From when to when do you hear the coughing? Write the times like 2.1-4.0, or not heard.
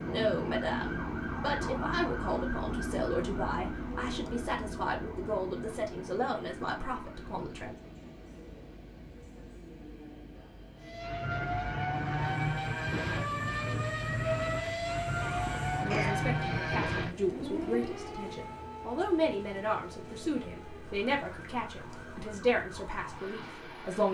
15.2-16.9.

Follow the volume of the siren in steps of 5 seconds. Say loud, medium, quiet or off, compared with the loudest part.
medium, quiet, loud, loud, quiet.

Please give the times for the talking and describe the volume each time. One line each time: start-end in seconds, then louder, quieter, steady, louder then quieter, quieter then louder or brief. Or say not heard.
0.0-7.8 steady
15.8-24.0 steady.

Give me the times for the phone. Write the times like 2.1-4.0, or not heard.
not heard.